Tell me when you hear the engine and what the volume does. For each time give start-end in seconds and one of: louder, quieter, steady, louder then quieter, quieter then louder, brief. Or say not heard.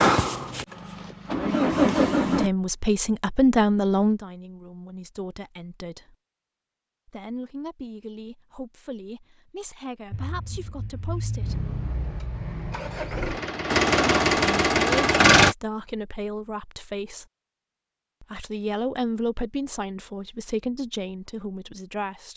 0.0-2.5 brief
10.1-15.6 louder.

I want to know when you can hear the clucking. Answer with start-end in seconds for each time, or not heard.
not heard.